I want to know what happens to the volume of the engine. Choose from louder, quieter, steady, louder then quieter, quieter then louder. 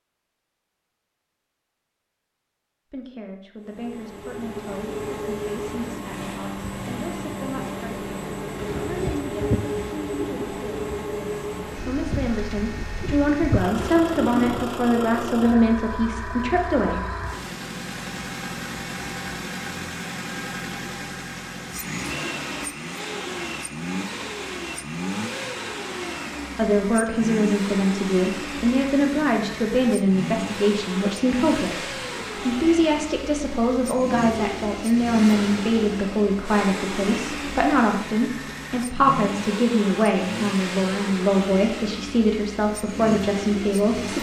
steady.